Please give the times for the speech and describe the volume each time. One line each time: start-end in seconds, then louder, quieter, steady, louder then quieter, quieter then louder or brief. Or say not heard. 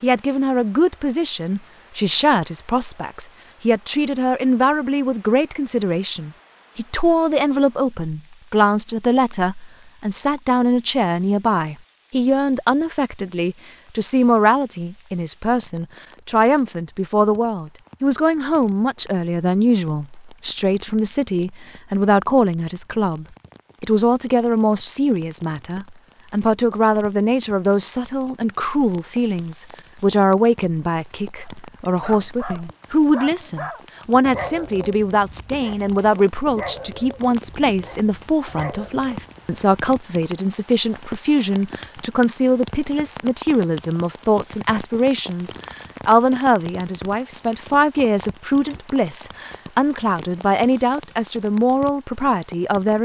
0.0-53.0 steady.